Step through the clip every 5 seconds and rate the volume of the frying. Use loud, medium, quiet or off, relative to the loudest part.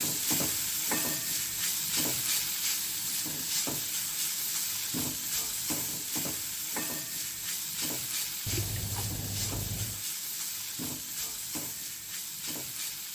loud, loud, medium.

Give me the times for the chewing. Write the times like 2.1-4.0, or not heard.
8.4-10.1.